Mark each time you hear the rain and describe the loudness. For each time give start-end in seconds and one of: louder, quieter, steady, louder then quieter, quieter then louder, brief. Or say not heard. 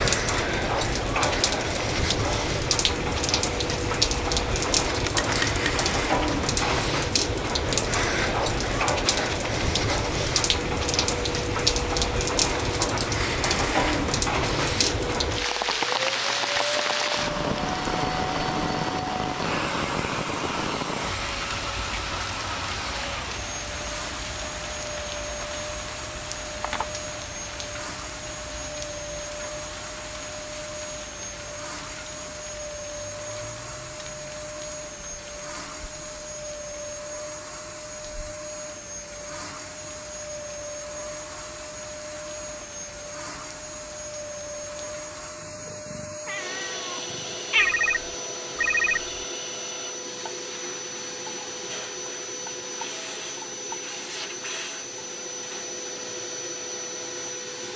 0.0-45.5 quieter.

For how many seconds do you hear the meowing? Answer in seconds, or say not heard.
2 s.